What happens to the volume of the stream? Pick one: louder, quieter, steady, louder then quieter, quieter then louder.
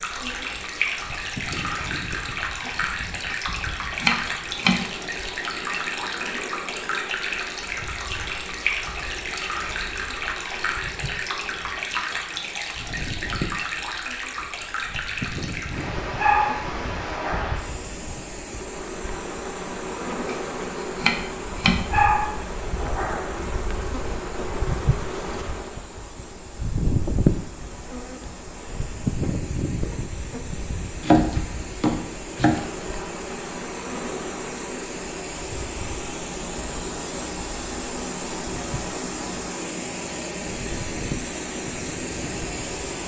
quieter then louder.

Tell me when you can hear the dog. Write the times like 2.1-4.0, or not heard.
16.1-17.6, 21.9-23.4.